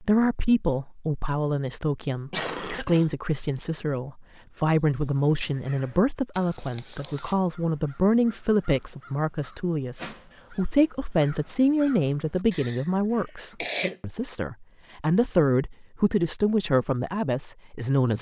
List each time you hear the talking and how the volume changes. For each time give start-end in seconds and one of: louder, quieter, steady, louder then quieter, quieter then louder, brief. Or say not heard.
0.0-18.1 steady.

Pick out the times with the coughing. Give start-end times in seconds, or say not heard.
2.0-4.0, 6.3-7.3, 12.5-12.9, 13.6-14.0.